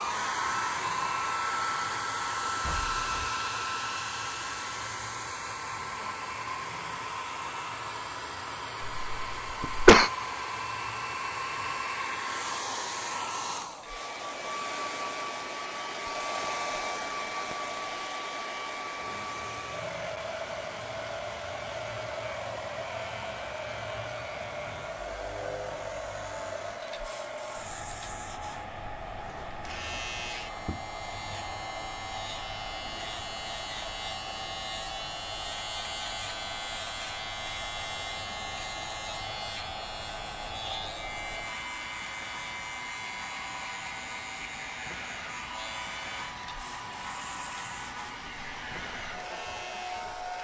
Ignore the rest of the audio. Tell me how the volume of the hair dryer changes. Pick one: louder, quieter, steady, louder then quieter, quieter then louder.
quieter.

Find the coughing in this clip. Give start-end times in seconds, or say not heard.
8.9-10.1.